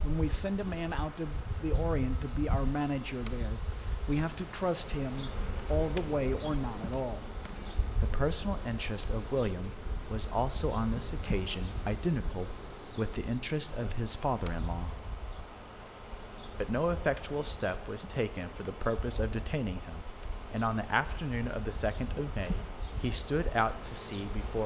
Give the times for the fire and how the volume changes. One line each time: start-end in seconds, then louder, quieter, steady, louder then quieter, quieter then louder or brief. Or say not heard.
not heard.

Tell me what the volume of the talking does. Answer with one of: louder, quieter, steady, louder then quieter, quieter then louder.
steady.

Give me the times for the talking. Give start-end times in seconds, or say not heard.
0.0-7.2, 8.0-15.1, 16.6-24.6.